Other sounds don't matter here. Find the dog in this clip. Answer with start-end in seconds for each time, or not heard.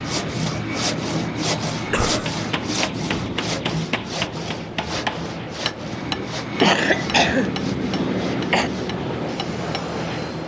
not heard.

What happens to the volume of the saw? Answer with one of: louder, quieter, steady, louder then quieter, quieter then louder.
quieter.